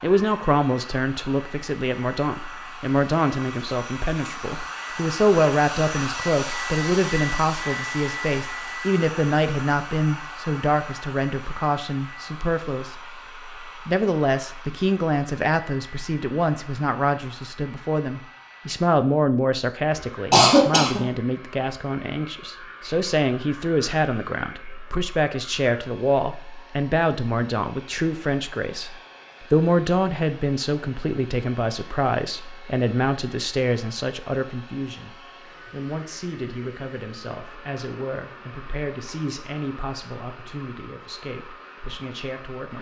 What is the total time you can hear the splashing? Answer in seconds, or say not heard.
not heard.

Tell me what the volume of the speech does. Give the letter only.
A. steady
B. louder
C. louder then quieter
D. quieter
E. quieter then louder
D.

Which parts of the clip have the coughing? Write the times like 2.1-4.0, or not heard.
20.3-21.0.